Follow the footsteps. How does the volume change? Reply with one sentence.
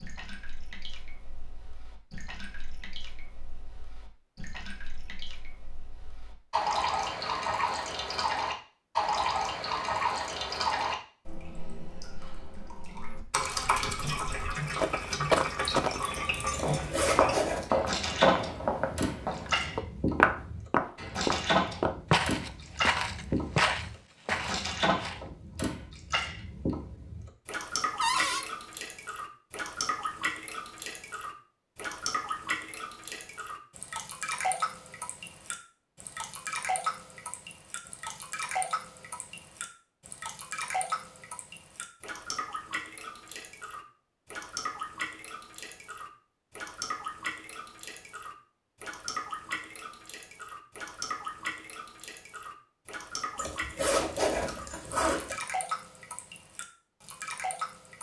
The volume of the footsteps stays about the same.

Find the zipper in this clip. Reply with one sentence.
The zipper can be heard from 16.5 to 17.7 s and from 53.4 to 55.4 s.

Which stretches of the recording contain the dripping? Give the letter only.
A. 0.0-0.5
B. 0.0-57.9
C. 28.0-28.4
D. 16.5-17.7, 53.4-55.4
B.